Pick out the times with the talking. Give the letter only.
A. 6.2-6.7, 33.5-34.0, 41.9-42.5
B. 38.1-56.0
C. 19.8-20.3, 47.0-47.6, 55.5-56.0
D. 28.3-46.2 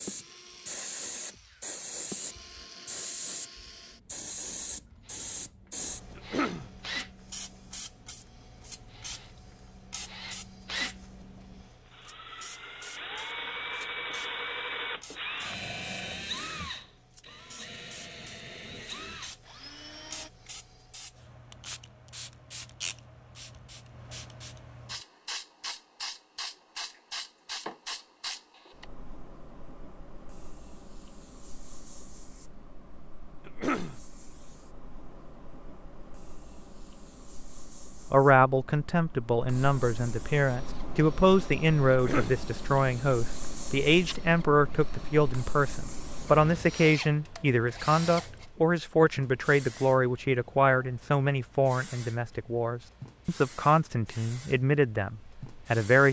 B.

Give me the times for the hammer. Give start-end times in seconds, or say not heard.
not heard.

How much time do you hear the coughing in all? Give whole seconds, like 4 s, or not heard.
2 s.